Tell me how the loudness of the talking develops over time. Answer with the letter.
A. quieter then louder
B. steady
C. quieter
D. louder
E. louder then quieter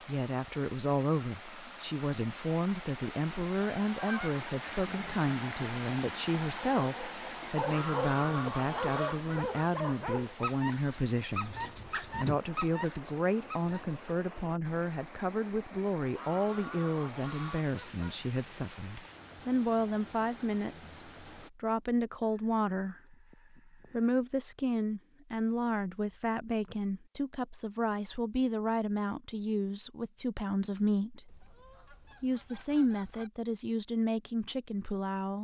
B.